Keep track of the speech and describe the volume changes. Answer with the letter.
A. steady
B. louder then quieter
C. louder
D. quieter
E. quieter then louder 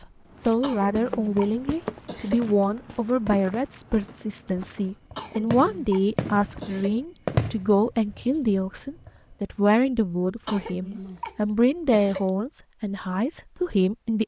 A.